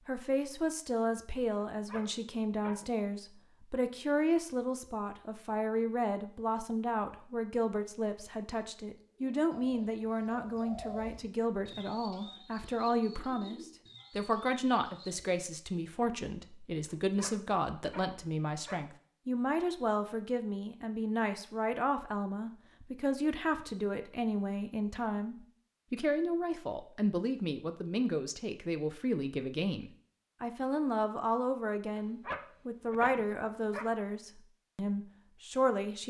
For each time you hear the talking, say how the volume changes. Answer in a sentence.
You can hear the talking from 0.1 to 36.0 s, at a steady volume.